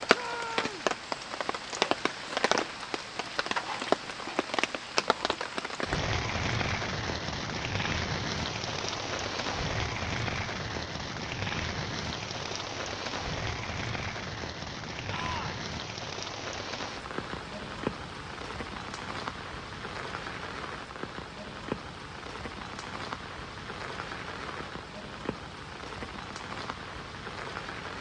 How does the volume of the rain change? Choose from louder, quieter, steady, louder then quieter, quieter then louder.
quieter.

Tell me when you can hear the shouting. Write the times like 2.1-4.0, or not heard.
0.1-0.9, 15.1-15.7.